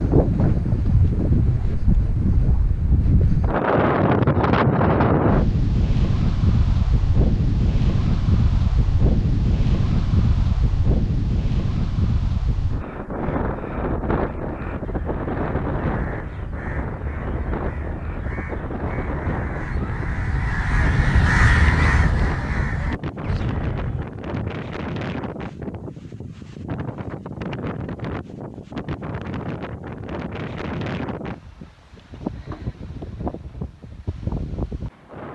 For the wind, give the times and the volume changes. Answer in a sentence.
The wind can be heard from 0.0 to 35.3 s, getting quieter.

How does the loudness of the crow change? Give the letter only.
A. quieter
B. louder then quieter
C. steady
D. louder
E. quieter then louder
B.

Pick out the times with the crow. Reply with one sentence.
You can hear the crow from 14.8 to 24.5 s.